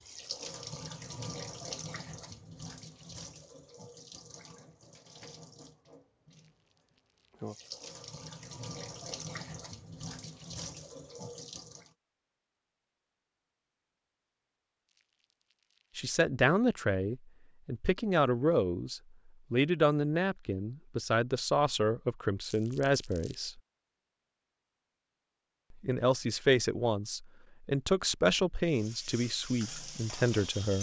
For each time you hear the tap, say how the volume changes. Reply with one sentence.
The tap can be heard from 0.0 to 11.9 s, getting quieter then louder; and briefly from 28.6 to 30.7 s.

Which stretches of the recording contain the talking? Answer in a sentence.
The talking can be heard from 15.9 to 23.6 s and from 25.7 to 30.7 s.